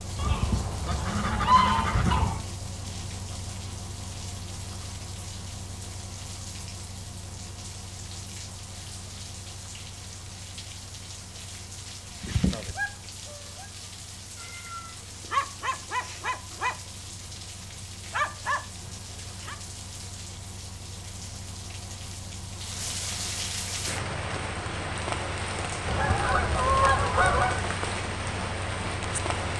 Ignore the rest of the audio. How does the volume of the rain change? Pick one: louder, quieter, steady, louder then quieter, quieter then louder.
louder.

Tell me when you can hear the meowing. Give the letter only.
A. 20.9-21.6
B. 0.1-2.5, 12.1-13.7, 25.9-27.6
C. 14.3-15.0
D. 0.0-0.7
C.